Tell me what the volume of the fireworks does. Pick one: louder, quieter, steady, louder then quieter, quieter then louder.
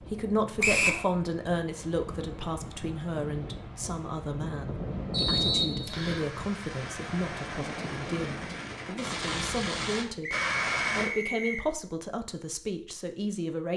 louder.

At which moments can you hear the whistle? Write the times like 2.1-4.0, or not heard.
0.6-1.1, 5.1-6.2, 10.2-11.7.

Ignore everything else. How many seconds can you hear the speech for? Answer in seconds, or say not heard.
13 s.